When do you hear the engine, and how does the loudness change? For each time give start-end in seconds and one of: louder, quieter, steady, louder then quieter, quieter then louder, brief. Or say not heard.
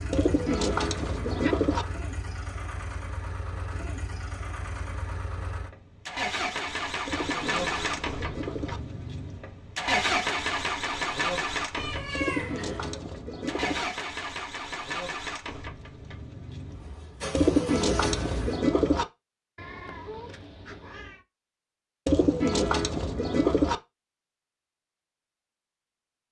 0.0-18.6 louder then quieter.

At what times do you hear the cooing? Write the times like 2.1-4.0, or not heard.
0.1-1.9, 7.0-8.8, 12.1-13.8, 17.3-19.1, 22.1-23.8.